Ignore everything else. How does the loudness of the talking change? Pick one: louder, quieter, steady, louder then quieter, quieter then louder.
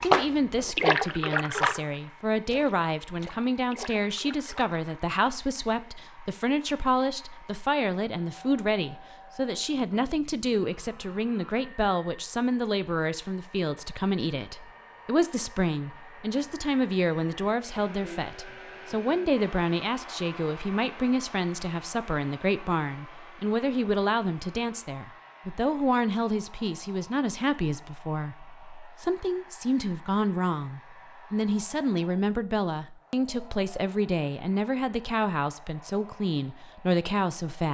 steady.